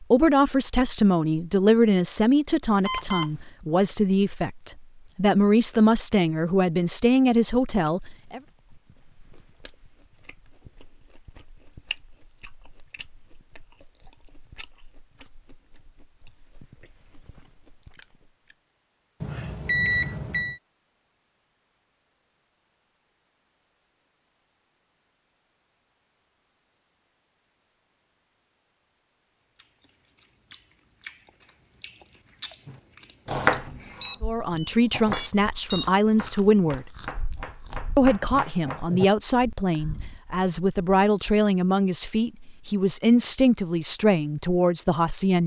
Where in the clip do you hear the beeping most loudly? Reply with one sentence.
The loudest moment of the beeping is at 20 seconds.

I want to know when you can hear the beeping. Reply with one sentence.
You can hear the beeping from 2.9 to 3.3 s, from 19.2 to 20.6 s and from 34.0 to 35.9 s.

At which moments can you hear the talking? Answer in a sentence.
The talking can be heard from 0.0 to 8.4 s, from 34.2 to 36.9 s and from 38.0 to 45.4 s.